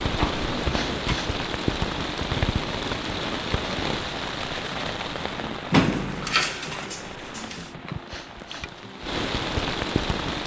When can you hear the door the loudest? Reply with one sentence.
The loudest moment of the door is at 6 seconds.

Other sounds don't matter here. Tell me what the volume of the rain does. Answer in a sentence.
The volume of the rain goes down, then up.